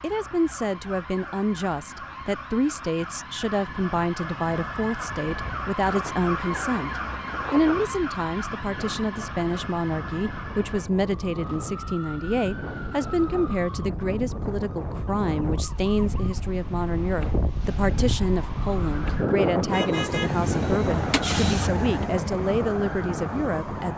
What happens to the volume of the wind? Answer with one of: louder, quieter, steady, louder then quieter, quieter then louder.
louder.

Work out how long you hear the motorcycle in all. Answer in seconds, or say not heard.
4 s.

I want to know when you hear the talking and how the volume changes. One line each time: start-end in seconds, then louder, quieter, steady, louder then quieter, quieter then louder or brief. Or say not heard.
0.0-23.9 steady.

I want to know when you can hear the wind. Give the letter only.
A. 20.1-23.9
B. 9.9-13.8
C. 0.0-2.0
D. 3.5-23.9
D.